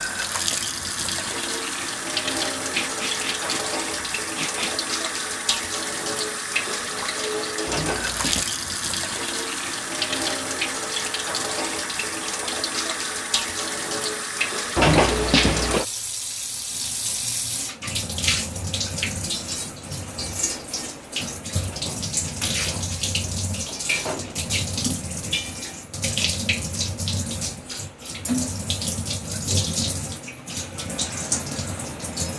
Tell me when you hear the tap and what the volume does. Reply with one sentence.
The tap can be heard from 0.0 to 32.3 s, at a steady volume.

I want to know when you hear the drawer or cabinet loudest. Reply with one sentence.
The volume of the drawer or cabinet peaks at 15 seconds.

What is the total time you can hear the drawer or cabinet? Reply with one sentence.
You can hear the drawer or cabinet for 5 seconds altogether.